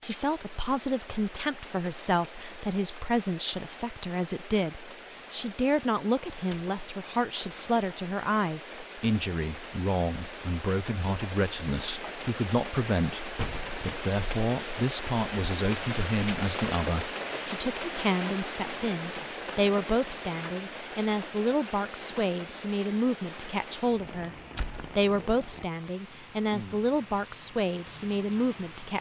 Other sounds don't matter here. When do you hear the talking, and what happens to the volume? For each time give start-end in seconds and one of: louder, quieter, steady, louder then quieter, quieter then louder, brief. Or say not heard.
0.0-28.9 steady.